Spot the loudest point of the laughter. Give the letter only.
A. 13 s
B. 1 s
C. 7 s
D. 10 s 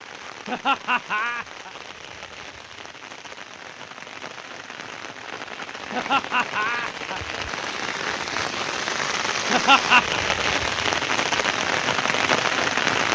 D.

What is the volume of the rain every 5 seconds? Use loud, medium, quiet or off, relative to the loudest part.
quiet, medium, loud.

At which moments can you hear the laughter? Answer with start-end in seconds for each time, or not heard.
0.5-1.7, 5.9-7.2, 9.5-10.2.